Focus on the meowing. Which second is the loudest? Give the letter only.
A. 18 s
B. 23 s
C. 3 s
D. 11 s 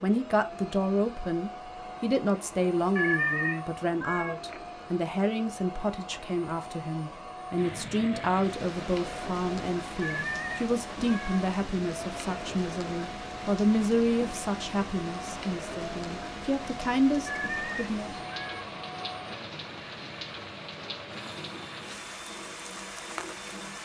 C.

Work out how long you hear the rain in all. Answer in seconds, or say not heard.
16 s.